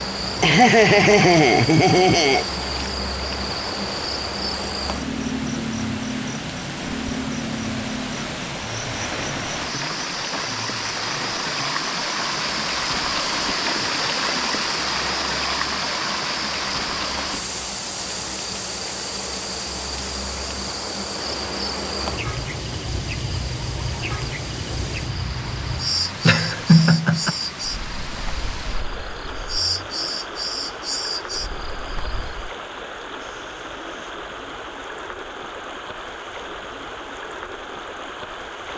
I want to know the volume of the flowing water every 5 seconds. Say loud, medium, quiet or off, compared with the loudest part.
medium, medium, loud, loud, medium, medium, medium, medium.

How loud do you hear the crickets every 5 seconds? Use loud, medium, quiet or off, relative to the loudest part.
loud, loud, medium, medium, loud, loud, loud, off.